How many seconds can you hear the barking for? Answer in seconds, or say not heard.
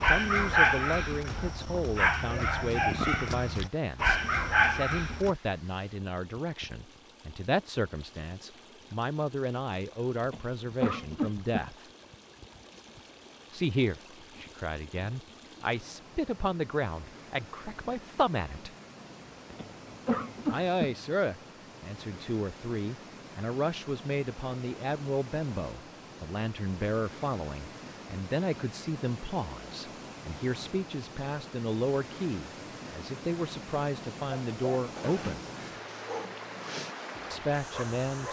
9 s.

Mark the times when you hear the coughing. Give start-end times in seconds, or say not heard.
10.2-11.7, 19.5-21.0.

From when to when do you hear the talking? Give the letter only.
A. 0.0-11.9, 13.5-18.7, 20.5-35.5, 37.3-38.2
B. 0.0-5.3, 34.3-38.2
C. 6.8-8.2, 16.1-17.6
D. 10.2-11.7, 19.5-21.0
A.